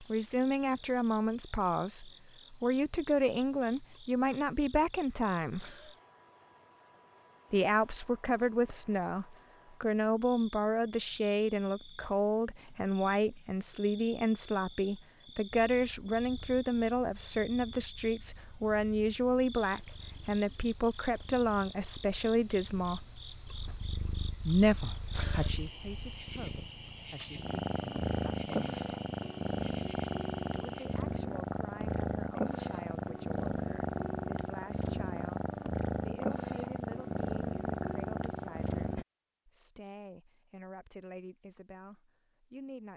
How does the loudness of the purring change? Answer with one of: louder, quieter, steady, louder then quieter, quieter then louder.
louder.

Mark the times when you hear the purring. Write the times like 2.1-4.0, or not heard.
15.6-39.0.